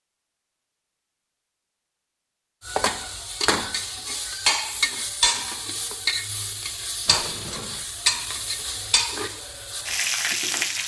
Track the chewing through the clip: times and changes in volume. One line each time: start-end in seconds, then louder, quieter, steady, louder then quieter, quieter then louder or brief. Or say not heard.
not heard.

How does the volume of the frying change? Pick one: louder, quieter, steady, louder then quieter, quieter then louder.
steady.